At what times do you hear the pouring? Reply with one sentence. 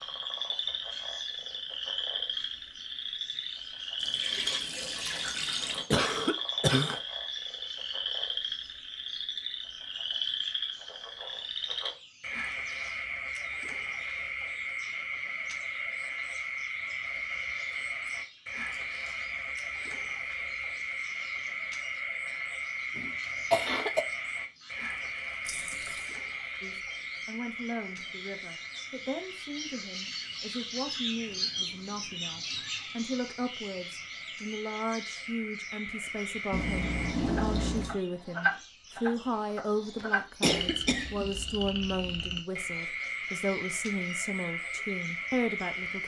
The pouring can be heard from 4.0 to 5.9 s, from 25.4 to 26.1 s and from 36.5 to 38.0 s.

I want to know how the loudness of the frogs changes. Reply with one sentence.
The loudness of the frogs goes down, then up.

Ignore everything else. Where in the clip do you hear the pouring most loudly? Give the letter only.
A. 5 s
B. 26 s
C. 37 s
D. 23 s
C.